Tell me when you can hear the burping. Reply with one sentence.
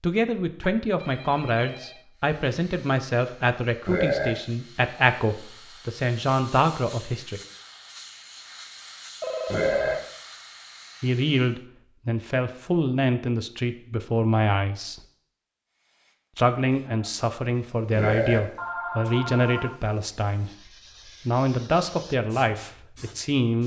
The burping can be heard from 3.9 to 4.3 s, from 9.4 to 9.9 s and from 17.9 to 18.4 s.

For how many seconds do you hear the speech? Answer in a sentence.
You can hear the speech for 19 seconds altogether.